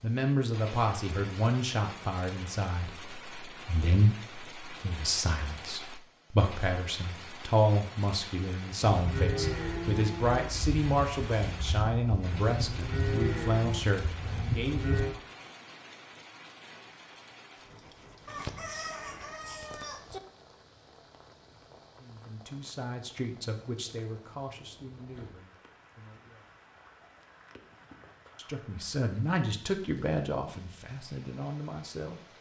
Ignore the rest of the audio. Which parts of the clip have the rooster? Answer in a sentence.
You can hear the rooster from 18.2 to 20.2 s.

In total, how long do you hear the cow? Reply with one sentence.
The cow can be heard for 6 seconds in total.